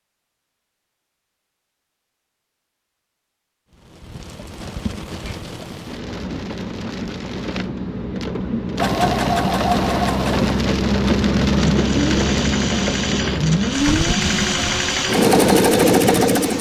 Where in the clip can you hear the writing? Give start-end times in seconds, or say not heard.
not heard.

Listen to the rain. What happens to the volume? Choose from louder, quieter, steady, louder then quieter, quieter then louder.
louder then quieter.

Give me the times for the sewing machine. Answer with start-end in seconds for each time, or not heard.
8.8-16.5.